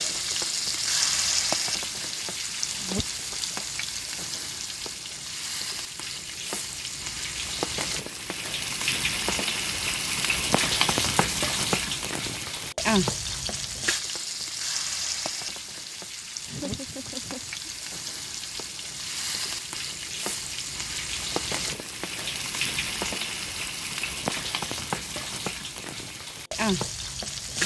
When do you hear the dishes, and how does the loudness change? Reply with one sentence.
The dishes can't be heard in this clip.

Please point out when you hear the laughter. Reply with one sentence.
You can hear the laughter from 16.4 to 17.7 s.